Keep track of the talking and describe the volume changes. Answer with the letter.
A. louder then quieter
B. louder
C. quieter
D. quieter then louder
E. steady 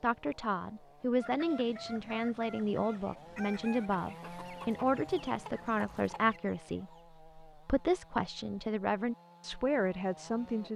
E.